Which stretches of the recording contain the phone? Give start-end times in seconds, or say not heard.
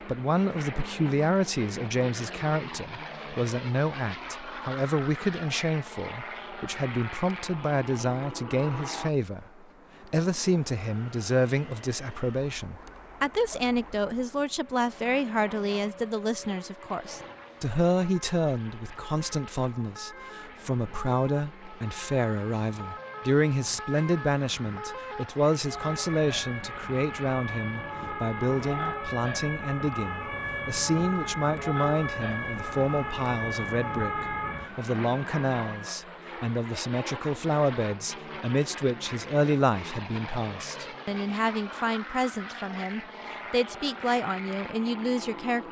not heard.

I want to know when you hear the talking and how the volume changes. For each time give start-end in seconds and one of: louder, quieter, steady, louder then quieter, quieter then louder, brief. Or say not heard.
0.1-45.6 steady.